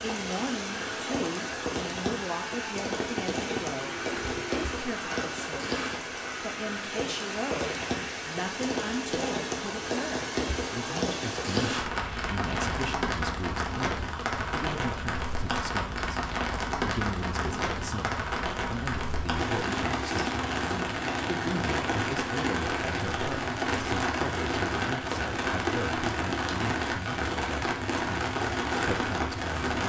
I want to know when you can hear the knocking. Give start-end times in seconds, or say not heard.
3.0-4.7.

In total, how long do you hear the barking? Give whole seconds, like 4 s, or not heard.
not heard.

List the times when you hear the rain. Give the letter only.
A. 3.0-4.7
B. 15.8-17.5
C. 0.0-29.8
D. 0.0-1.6
C.